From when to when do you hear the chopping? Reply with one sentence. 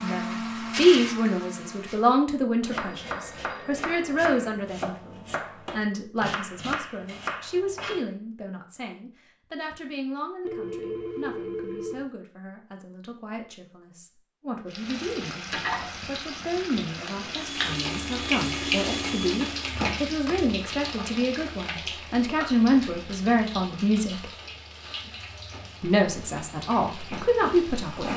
The chopping can be heard from 2.7 to 8.0 s.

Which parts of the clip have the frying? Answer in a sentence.
The frying can be heard from 14.7 to 28.1 s.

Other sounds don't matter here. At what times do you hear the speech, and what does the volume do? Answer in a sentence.
The speech can be heard from 0.0 to 24.2 s, getting quieter then louder; and briefly from 25.8 to 28.1 s.